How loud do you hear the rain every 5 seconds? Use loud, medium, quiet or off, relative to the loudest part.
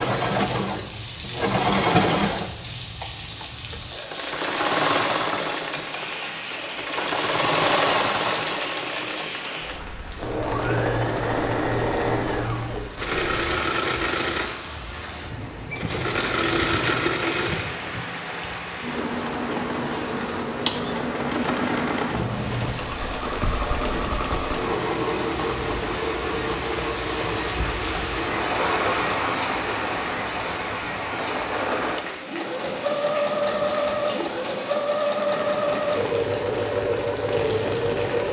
medium, medium, medium, medium, medium, loud, loud, medium.